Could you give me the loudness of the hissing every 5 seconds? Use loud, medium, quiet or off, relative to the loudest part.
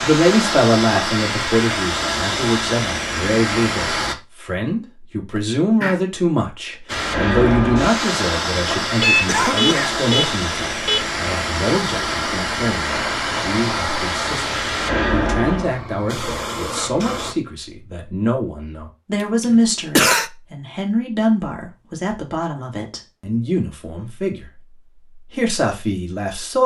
loud, loud, loud, loud, off, off.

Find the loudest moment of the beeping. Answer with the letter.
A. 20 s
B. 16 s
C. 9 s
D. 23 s
C.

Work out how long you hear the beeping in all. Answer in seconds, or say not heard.
2 s.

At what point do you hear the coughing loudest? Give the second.
20 s.